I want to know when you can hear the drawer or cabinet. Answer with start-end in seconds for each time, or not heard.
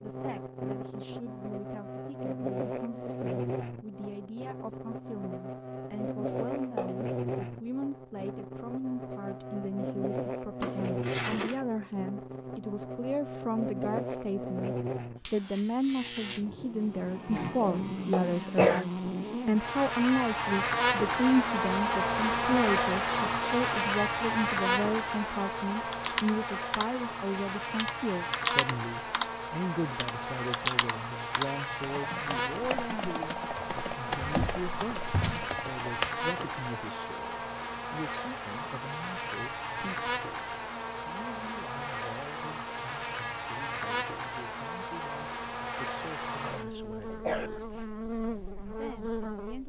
10.6-11.6, 34.1-35.5.